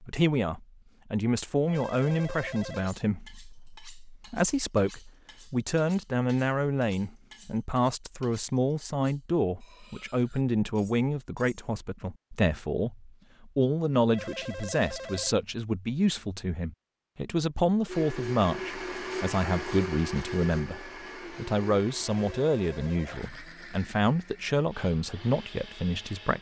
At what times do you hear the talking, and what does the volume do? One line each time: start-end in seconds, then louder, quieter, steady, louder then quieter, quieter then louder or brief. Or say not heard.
0.0-26.3 steady.